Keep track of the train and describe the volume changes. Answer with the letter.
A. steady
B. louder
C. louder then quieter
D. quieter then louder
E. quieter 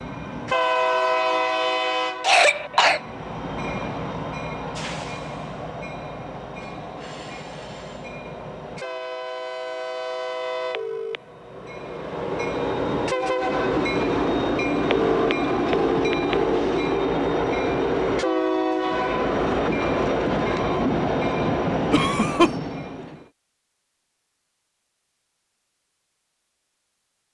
D.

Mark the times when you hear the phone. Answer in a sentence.
The phone can be heard from 10.7 to 11.2 s and from 14.9 to 16.6 s.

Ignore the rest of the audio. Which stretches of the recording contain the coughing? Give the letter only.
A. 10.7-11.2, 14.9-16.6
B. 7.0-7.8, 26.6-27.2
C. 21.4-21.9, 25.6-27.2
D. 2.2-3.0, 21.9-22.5
D.